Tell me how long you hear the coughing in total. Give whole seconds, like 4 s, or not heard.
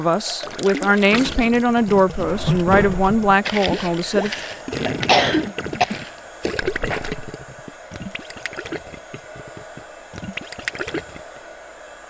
2 s.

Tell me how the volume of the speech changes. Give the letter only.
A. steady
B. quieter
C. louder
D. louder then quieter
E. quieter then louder
A.